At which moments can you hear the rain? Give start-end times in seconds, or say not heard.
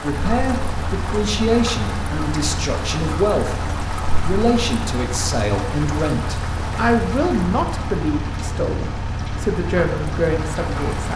0.0-11.1.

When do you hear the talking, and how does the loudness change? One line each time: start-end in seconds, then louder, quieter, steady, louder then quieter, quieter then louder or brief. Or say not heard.
0.0-11.1 steady.